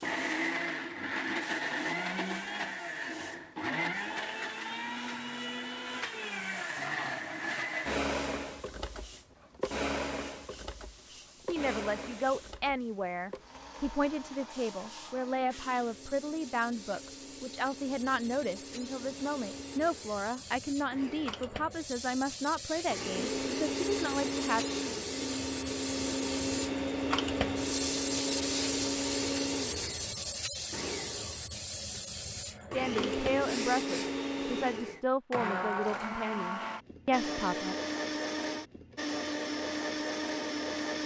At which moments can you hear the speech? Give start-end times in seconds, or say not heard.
11.4-24.6, 32.7-37.8.